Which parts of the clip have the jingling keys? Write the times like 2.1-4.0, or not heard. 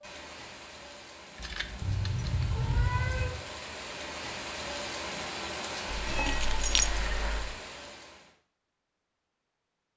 1.4-2.9, 6.0-6.9.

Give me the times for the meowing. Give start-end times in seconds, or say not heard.
1.8-3.3, 5.8-7.5.